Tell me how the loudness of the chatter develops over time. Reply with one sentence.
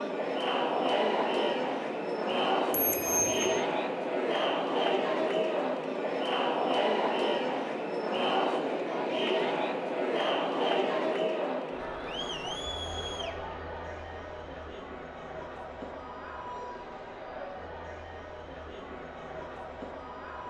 The volume of the chatter goes down.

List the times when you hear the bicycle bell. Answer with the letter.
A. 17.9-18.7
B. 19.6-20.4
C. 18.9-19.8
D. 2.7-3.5
D.